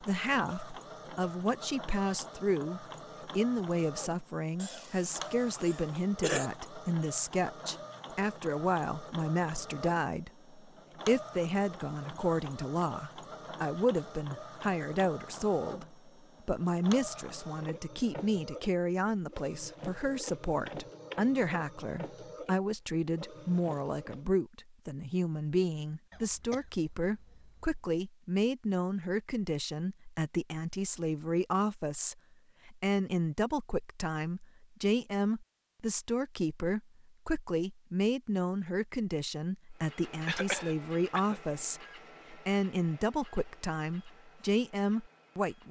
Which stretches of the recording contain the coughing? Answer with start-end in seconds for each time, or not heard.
4.5-6.5, 26.1-27.8, 40.2-41.4.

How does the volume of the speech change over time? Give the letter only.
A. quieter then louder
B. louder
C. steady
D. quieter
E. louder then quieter
C.